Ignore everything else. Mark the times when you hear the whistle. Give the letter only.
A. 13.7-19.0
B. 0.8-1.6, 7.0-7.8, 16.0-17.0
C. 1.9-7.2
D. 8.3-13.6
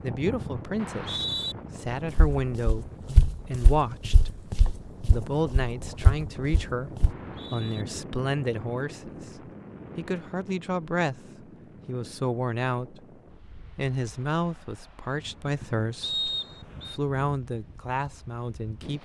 B.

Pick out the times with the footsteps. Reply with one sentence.
You can hear the footsteps from 1.9 to 7.2 s.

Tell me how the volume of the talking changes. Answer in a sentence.
The volume of the talking stays about the same.